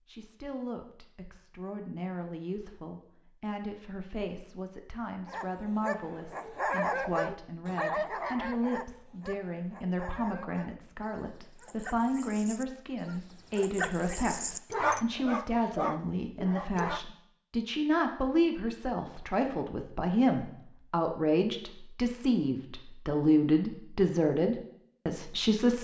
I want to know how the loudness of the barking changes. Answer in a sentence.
The volume of the barking goes down, then up.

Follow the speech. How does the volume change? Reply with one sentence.
The loudness of the speech goes up.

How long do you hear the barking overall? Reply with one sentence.
You can hear the barking for 12 seconds altogether.